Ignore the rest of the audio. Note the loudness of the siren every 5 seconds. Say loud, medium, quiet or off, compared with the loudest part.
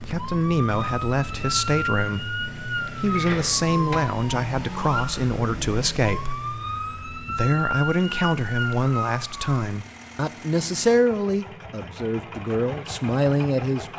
loud, loud, off.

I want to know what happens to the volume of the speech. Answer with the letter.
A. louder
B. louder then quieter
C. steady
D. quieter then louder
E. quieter
C.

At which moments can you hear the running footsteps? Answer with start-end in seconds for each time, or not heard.
not heard.